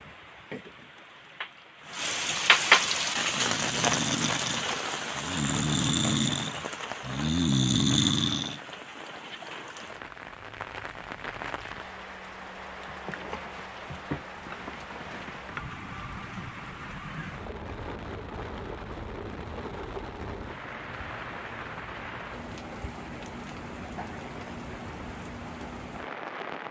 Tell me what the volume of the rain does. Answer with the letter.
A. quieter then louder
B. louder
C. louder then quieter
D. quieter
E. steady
D.